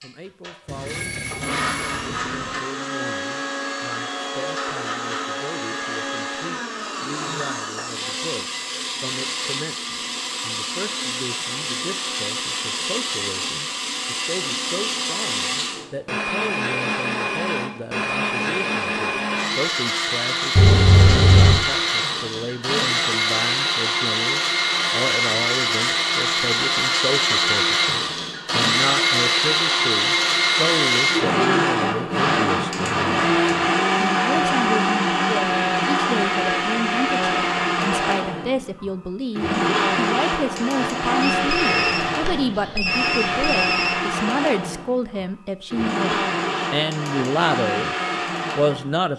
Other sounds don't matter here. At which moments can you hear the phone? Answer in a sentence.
The phone can be heard from 0.7 to 2.6 s, from 20.6 to 21.6 s and from 41.2 to 44.0 s.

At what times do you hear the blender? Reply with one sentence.
You can hear the blender from 0.0 to 49.1 s.